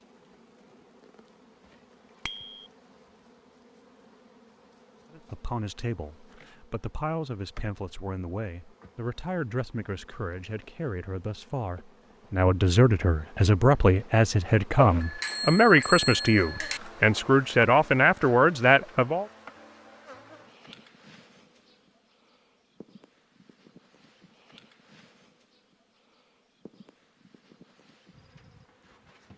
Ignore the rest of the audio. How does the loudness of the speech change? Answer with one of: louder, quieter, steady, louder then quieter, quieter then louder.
louder.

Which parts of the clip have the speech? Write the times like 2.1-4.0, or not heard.
5.1-19.2.